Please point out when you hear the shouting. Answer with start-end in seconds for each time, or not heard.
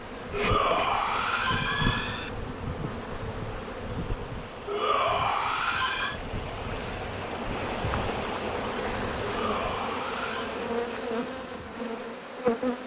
0.3-2.3, 4.7-6.2, 9.2-10.6.